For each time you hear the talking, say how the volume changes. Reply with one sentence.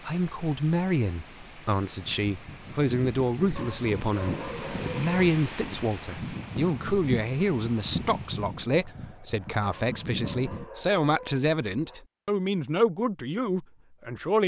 You can hear the talking from 0.0 to 14.4 s, at a steady volume.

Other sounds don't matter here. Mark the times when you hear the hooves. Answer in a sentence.
The hooves can be heard from 2.0 to 10.7 s.